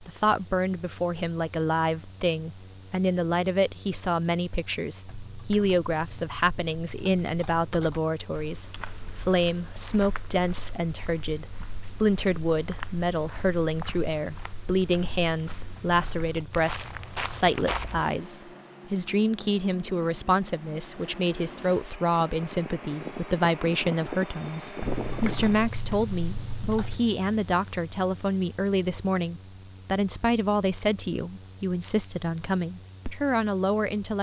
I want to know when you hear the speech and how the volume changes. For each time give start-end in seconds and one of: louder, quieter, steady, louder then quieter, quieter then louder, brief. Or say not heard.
0.0-34.1 steady.